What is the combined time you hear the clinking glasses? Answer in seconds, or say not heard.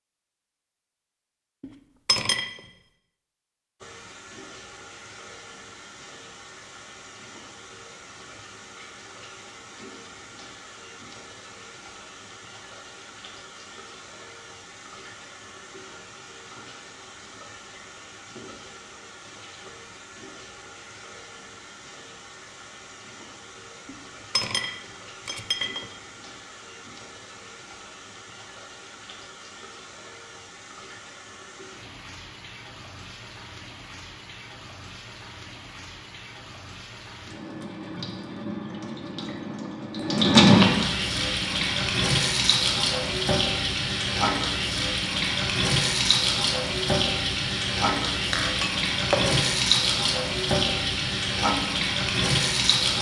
4 s.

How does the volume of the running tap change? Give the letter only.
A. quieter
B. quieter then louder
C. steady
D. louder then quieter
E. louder
E.